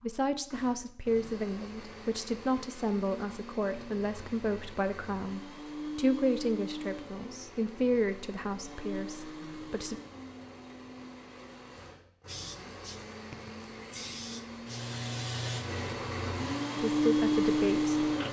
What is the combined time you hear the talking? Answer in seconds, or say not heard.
11 s.